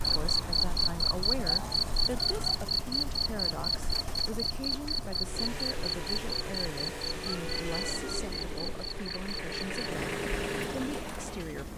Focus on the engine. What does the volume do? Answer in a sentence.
The loudness of the engine goes up.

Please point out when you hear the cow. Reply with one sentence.
The cow can't be heard in this clip.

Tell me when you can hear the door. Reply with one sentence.
You can't hear the door here.